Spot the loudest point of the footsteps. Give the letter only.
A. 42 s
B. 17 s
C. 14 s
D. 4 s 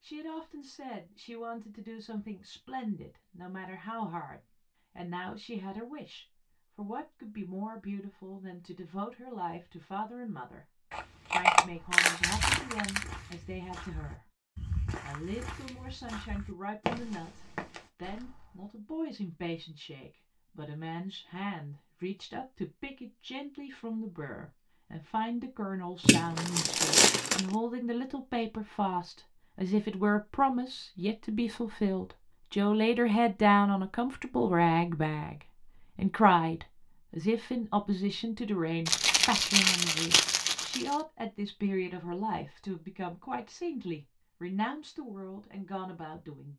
B.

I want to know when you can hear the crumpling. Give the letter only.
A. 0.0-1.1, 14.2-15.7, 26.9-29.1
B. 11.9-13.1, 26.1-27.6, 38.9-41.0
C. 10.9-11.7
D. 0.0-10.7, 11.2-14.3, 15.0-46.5
B.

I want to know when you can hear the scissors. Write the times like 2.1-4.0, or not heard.
10.9-11.7.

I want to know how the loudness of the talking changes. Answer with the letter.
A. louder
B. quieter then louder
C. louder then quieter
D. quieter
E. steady
C.